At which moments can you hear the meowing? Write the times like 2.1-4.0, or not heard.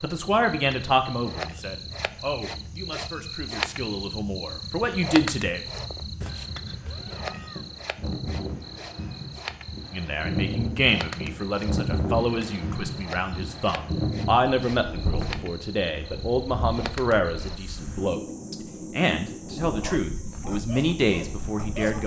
6.2-7.7.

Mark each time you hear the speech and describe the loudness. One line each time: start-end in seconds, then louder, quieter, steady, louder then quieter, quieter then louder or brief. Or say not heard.
0.0-5.6 quieter then louder
9.9-22.0 steady.